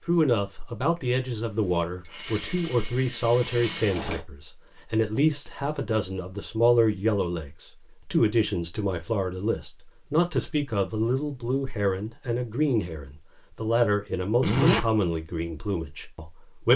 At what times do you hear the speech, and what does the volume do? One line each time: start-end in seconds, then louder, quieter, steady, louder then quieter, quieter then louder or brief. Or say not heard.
0.1-16.7 steady.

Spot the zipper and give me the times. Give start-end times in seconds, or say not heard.
3.4-4.2, 14.4-14.8.